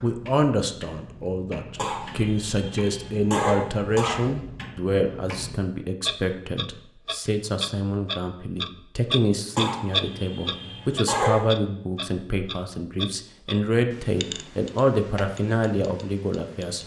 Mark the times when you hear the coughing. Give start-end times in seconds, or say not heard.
1.8-4.2, 9.6-11.4.